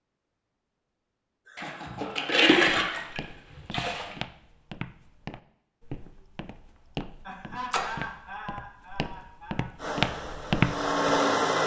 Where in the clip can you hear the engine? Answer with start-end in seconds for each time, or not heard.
9.8-11.6.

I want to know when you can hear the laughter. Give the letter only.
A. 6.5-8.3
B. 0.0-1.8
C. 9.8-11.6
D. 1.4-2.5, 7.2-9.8
D.